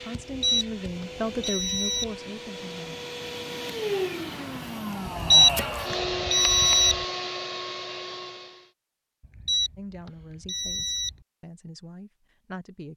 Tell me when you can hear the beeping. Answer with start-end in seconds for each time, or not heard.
0.3-2.1, 5.2-7.0, 9.2-11.2.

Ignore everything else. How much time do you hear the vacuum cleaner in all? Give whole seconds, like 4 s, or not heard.
9 s.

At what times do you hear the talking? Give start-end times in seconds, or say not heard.
0.0-3.0, 9.8-12.9.